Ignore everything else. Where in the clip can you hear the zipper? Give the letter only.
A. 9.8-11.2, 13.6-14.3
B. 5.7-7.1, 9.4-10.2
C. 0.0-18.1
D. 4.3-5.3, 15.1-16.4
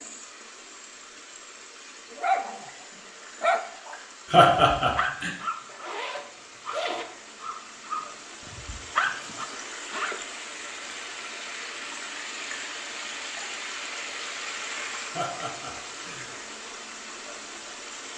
B.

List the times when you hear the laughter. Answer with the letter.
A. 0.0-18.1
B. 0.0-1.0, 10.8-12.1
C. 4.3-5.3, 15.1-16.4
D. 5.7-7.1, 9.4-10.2
C.